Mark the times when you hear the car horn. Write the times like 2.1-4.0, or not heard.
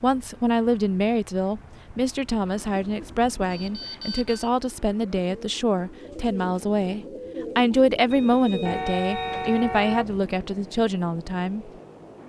8.7-10.3.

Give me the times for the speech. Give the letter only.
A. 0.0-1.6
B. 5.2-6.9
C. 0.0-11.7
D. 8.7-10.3
C.